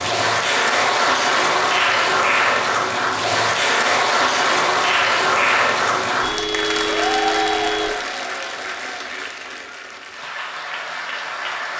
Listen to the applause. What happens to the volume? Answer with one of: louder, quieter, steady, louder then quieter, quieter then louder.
quieter.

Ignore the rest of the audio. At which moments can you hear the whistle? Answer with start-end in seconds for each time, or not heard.
not heard.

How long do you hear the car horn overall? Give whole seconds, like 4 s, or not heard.
2 s.